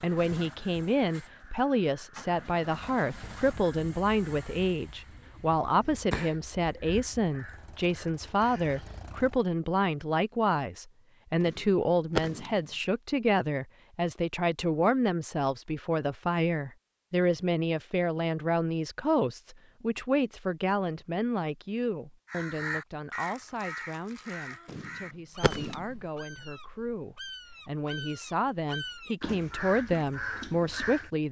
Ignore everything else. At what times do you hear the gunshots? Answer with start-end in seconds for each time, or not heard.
11.4-12.6, 24.6-25.9.